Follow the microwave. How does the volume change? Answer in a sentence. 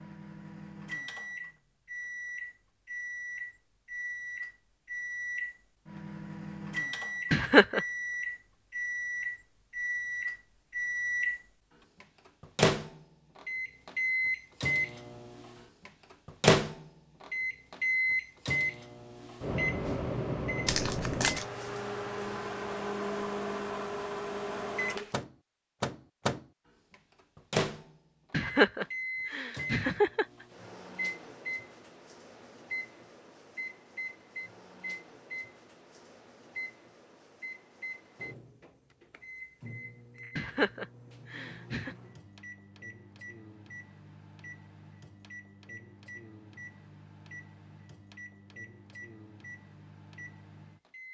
The volume of the microwave goes up, then down.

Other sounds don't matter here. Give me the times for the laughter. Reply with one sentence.
The laughter can be heard from 7.3 to 7.8 s, from 28.3 to 30.2 s and from 40.4 to 42.0 s.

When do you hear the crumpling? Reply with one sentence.
You can hear the crumpling from 20.6 to 21.4 s.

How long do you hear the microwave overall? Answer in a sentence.
You can hear the microwave for 51 seconds altogether.